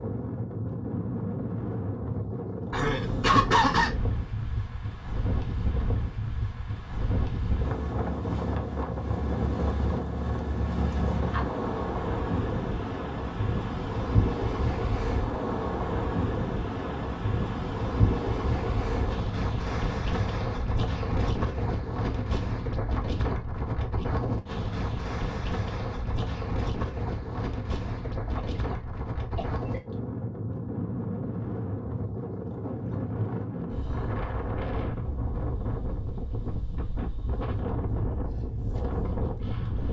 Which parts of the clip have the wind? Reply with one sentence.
The wind can be heard from 0.0 to 39.8 s.